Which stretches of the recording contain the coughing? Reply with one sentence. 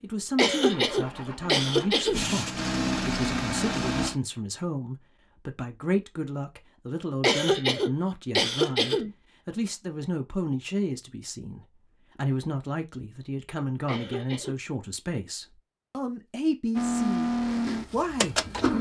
The coughing can be heard from 0.3 to 2.2 s, from 7.2 to 9.1 s and from 13.8 to 14.6 s.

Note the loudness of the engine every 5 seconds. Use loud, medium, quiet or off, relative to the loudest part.
loud, off, off, loud.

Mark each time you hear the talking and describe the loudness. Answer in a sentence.
You can hear the talking from 0.0 to 18.7 s, at a steady volume.